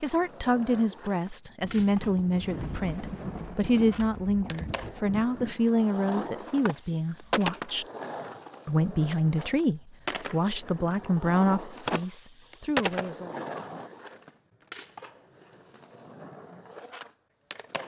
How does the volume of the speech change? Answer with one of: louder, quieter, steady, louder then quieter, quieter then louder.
steady.